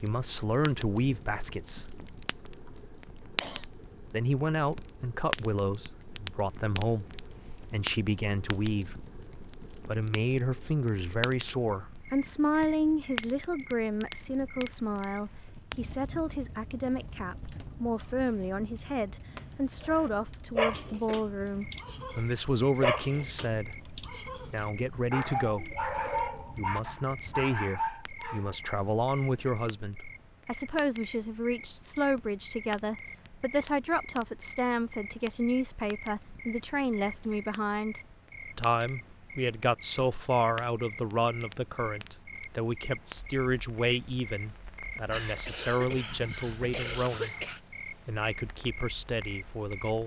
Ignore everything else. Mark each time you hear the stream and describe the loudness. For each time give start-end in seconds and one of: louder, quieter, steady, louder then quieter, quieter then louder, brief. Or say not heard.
not heard.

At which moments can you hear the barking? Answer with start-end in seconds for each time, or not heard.
19.8-24.5, 25.1-28.6.